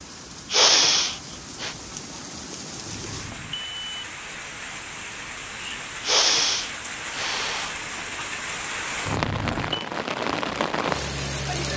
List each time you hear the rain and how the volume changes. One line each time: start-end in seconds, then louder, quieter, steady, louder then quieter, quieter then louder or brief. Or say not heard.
0.0-11.7 louder.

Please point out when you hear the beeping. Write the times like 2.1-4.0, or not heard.
2.9-3.9, 9.1-9.9.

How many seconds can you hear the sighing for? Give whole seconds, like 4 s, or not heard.
3 s.